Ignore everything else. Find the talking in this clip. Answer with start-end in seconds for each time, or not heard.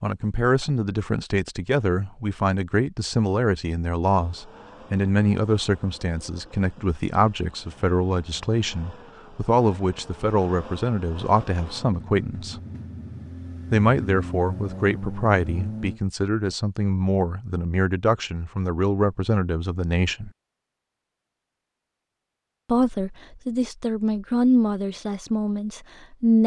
0.0-12.6, 13.7-20.3, 22.6-26.4.